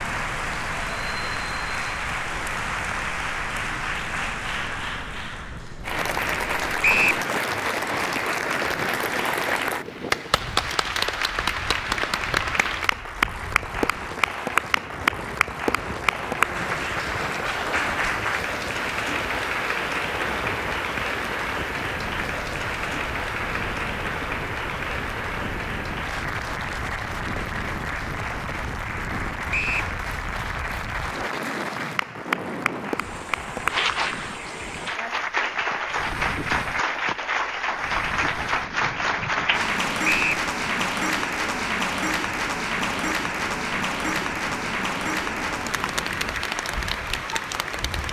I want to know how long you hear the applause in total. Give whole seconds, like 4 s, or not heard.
48 s.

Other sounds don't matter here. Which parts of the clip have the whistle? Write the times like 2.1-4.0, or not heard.
6.8-7.2, 29.5-29.9, 40.0-40.5.